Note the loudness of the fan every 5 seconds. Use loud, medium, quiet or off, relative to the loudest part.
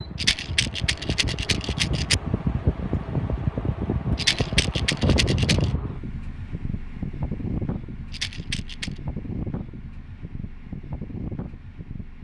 loud, loud, medium.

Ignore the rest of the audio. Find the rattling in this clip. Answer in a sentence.
The rattling can be heard from 0.1 to 2.1 s, from 4.2 to 5.7 s and from 8.1 to 9.0 s.